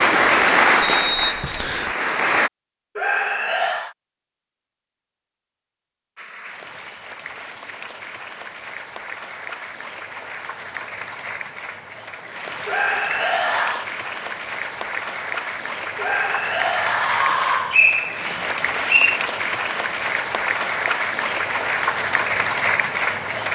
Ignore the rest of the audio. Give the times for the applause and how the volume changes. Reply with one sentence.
You can hear the applause briefly from 0.0 to 2.5 s; and from 6.2 to 23.5 s, getting louder.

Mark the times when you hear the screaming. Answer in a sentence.
The screaming can be heard from 3.0 to 4.0 s, from 12.7 to 13.9 s and from 15.9 to 17.8 s.